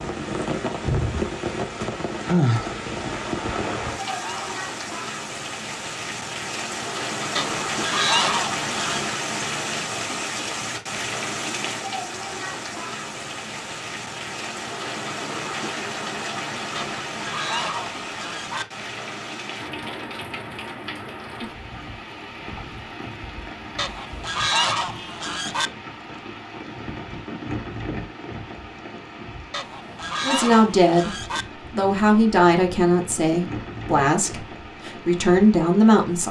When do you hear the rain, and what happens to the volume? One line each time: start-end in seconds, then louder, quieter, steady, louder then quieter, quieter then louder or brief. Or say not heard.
0.0-36.2 quieter.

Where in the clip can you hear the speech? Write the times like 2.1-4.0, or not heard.
30.2-36.2.